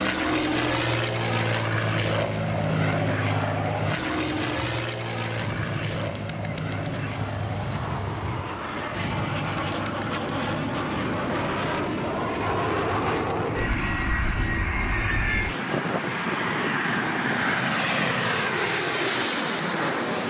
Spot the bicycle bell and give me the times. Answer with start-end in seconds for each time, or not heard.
not heard.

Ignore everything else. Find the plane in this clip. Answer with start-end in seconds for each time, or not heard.
0.0-20.2.